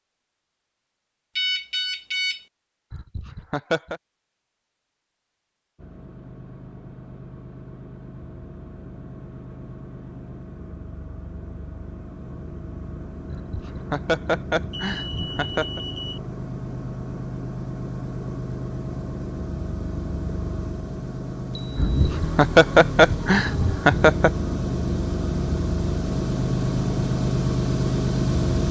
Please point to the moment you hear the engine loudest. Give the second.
28 s.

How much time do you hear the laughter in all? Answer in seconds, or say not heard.
6 s.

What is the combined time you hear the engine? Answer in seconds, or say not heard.
23 s.